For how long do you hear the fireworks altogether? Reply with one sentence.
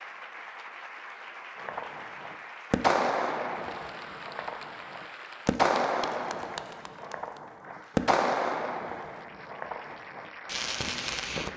You can hear the fireworks for 10 seconds altogether.